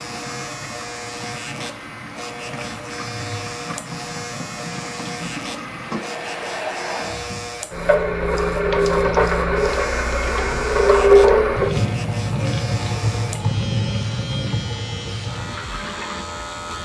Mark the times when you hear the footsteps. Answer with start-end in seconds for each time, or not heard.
not heard.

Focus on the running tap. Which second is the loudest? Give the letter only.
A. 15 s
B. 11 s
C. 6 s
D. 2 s
B.